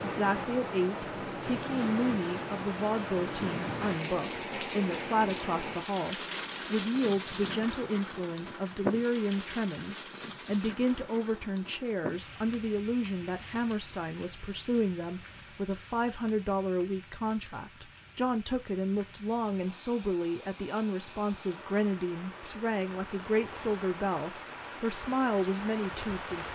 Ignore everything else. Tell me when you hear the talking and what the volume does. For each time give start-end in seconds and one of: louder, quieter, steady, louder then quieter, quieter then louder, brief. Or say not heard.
0.0-26.5 steady.